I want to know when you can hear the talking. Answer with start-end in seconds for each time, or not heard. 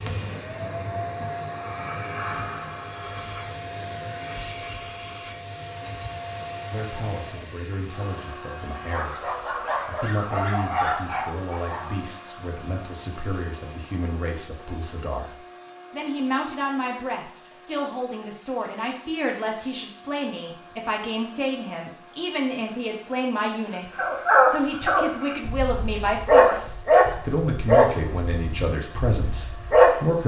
6.7-30.2.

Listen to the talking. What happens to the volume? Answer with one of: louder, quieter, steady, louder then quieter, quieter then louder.
louder.